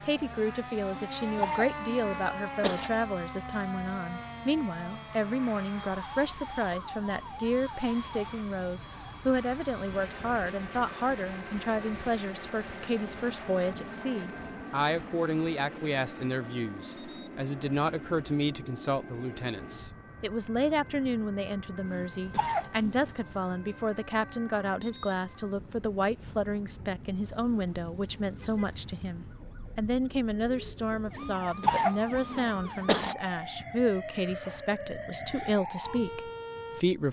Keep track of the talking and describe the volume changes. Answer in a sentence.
The volume of the talking stays about the same.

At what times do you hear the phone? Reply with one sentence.
You can't hear the phone here.